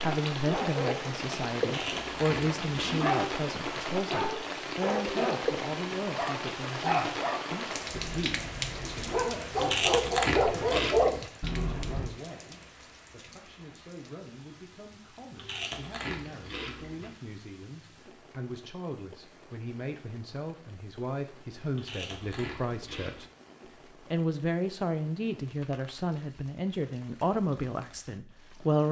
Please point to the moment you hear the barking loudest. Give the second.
11 s.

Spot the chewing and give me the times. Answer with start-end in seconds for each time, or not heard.
1.6-3.1, 9.6-11.3, 15.3-17.1, 21.8-23.3.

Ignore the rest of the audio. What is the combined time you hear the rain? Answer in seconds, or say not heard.
29 s.